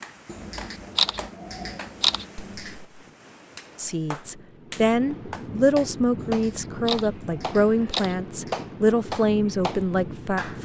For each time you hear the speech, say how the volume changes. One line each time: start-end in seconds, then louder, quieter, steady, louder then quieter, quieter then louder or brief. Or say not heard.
3.8-10.6 steady.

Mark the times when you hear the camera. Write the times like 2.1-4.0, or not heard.
0.2-2.8, 6.2-8.6.